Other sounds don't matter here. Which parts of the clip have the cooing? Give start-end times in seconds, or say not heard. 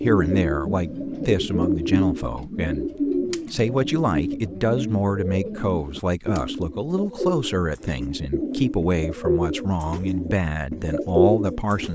0.0-11.9.